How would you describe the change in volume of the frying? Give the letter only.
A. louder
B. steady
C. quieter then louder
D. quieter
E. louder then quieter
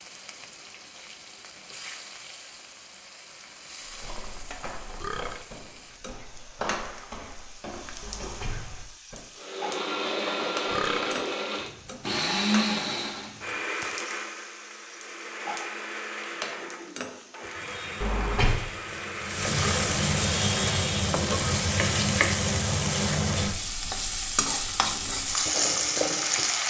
A.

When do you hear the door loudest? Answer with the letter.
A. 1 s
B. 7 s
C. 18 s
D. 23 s
C.